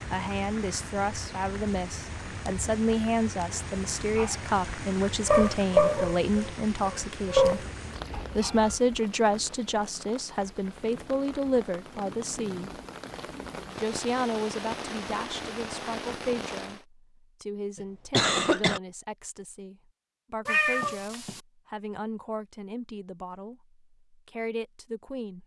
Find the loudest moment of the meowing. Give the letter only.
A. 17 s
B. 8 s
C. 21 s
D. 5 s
C.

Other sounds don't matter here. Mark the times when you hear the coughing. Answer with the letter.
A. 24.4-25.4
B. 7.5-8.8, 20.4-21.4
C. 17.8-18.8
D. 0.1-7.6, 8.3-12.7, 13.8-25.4
C.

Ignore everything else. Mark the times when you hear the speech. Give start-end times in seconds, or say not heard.
0.1-7.6, 8.3-12.7, 13.8-25.4.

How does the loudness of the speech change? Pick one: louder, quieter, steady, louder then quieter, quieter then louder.
quieter.